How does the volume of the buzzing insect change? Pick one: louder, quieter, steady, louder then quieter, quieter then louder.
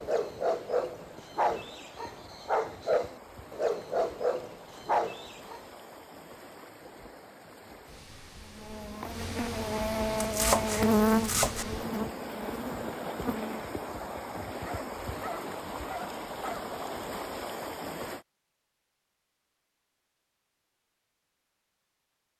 louder then quieter.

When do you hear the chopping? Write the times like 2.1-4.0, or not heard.
10.2-11.7.